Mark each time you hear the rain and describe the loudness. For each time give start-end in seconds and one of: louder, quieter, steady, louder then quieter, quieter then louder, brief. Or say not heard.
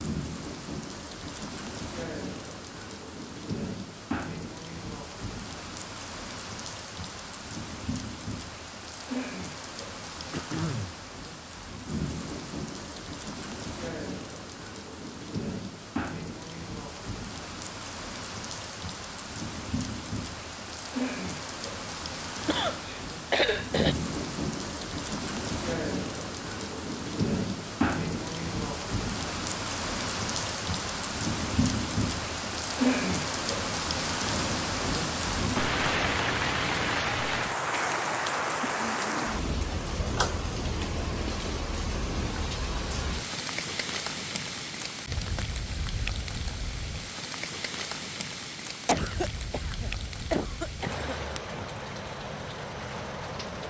0.0-53.6 louder then quieter.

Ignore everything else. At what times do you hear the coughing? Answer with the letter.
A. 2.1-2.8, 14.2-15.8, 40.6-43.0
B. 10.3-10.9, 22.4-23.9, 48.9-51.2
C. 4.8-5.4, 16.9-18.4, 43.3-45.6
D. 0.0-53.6
B.